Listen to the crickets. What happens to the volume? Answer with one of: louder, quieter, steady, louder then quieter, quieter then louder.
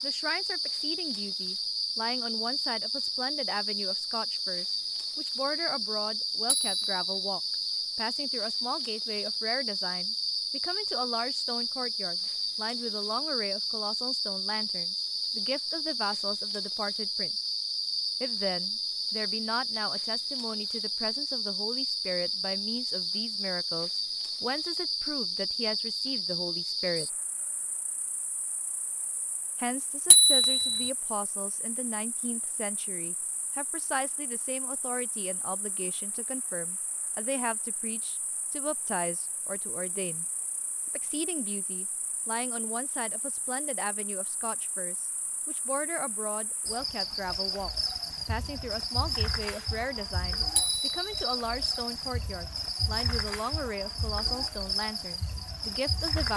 quieter then louder.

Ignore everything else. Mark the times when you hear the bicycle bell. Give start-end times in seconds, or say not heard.
6.5-7.3, 30.1-30.9, 50.5-51.3.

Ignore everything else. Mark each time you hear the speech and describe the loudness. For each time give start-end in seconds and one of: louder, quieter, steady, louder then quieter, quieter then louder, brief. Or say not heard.
0.0-17.4 steady
18.2-27.1 steady
29.6-40.2 steady
41.0-56.3 steady.